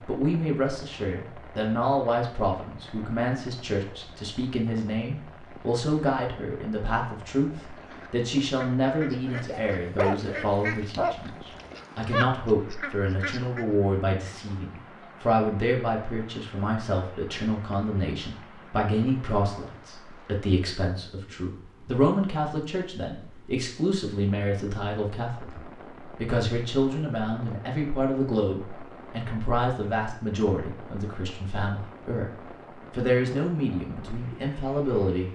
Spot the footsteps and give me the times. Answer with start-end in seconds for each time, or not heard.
not heard.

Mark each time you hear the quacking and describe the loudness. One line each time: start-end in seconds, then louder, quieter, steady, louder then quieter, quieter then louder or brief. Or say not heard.
7.6-13.7 louder.